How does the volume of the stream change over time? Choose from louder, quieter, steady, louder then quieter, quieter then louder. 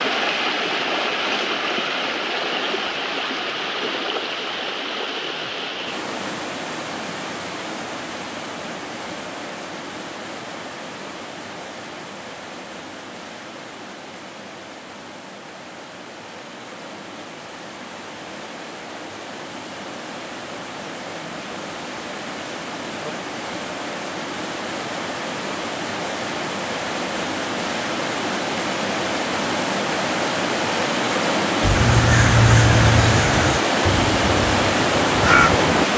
quieter then louder.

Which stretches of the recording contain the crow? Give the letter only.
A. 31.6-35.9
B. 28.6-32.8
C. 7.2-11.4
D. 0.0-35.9
A.